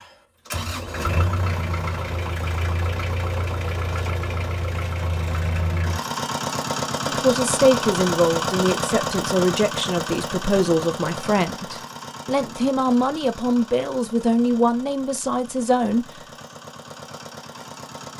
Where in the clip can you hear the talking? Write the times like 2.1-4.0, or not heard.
7.0-16.1.